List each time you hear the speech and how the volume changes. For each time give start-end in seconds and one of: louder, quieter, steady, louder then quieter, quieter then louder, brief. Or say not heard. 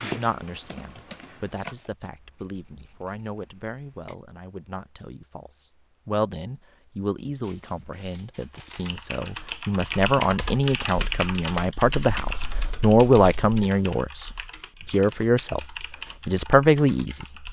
0.0-15.7 louder
16.2-17.4 brief.